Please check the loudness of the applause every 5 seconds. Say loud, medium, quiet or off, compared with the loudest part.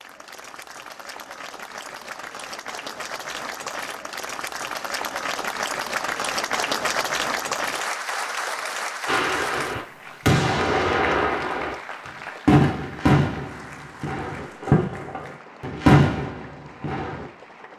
medium, loud, medium, quiet.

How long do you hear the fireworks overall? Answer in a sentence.
You can hear the fireworks for 8 seconds altogether.